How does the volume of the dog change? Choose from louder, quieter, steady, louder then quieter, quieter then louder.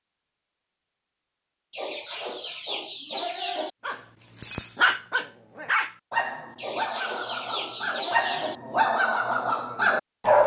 quieter then louder.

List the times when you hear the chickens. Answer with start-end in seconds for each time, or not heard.
1.7-3.7, 6.5-8.6.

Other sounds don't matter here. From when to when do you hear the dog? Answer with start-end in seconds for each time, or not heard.
3.9-10.4.